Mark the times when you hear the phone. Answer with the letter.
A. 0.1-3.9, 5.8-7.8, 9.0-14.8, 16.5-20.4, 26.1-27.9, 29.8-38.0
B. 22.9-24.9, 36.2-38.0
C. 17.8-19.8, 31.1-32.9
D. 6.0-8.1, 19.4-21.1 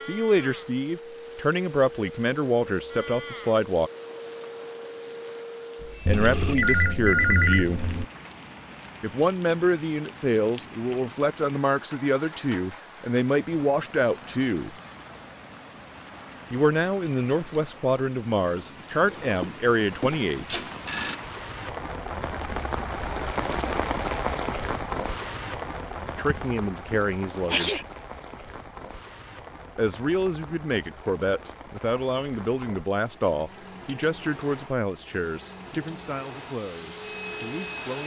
D.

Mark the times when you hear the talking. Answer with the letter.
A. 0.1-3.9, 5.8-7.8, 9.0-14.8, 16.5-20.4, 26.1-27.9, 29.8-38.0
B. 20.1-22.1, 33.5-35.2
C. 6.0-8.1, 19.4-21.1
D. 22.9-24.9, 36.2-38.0
A.